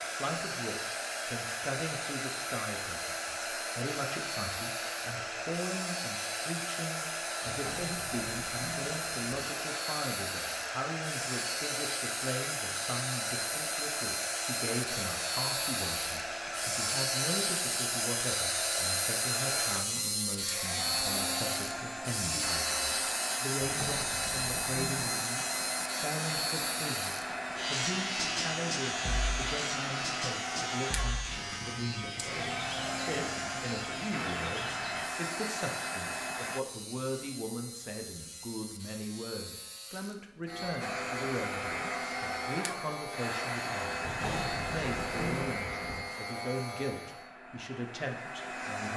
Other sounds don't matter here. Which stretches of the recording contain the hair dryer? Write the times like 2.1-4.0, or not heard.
0.0-36.6, 40.8-48.9.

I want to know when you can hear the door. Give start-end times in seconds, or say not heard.
7.5-9.3, 23.6-25.0, 44.0-46.0.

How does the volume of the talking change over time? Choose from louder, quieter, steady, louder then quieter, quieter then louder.
steady.